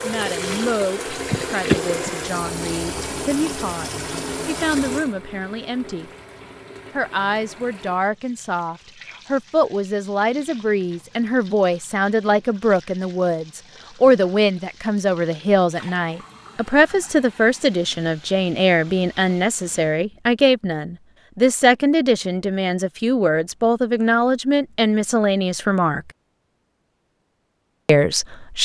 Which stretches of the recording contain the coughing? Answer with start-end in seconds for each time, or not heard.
1.1-2.2.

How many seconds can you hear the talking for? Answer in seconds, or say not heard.
26 s.